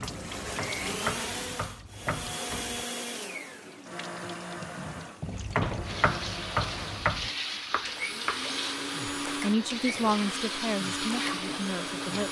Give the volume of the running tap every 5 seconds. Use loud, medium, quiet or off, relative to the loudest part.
medium, loud, loud.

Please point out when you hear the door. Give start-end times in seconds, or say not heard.
4.8-6.0.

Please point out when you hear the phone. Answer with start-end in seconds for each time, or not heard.
not heard.